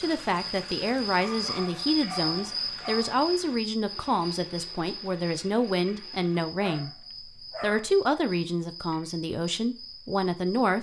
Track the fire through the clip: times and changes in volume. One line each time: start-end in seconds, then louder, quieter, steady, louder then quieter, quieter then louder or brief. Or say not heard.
not heard.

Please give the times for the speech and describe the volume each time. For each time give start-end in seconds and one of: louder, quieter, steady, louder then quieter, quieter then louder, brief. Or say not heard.
0.0-10.7 steady.